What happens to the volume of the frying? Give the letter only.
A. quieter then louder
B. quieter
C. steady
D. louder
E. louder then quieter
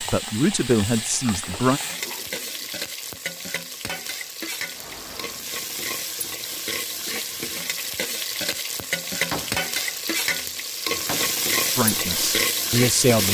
D.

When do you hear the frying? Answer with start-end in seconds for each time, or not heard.
0.0-13.2.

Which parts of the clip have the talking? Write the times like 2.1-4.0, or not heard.
0.0-1.8, 11.8-13.2.